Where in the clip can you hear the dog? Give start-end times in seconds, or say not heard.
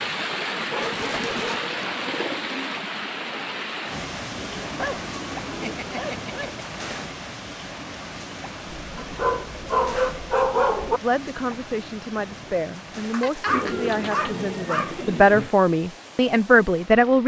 0.7-2.4, 4.7-6.7, 9.0-11.0, 13.1-15.1.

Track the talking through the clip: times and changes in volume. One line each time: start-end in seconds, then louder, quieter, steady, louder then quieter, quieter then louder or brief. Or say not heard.
11.0-17.2 louder.